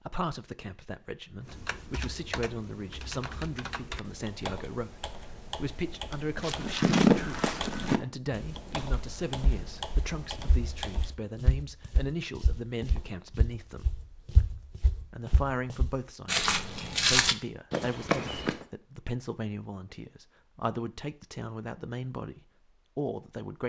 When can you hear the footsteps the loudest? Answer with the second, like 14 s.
7 s.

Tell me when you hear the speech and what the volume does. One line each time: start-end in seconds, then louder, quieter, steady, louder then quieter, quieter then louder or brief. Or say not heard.
0.0-13.9 steady
14.9-23.6 steady.